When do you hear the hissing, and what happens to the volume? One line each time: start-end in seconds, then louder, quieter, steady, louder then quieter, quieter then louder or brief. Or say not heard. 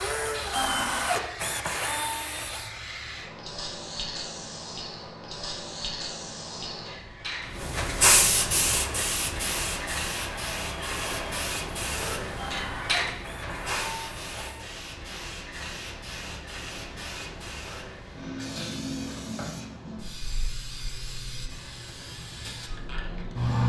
0.0-23.6 louder then quieter.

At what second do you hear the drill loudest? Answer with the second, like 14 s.
1 s.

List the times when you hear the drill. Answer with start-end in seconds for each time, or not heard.
0.0-2.7, 8.7-14.7.